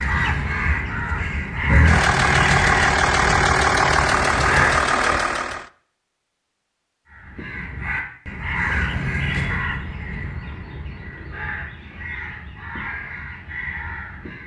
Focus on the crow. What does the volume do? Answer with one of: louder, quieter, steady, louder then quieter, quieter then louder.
quieter.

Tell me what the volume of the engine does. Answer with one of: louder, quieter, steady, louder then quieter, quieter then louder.
steady.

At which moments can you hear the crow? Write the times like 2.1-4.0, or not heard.
0.0-5.0, 7.0-14.4.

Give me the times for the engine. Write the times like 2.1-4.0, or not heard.
1.6-5.7.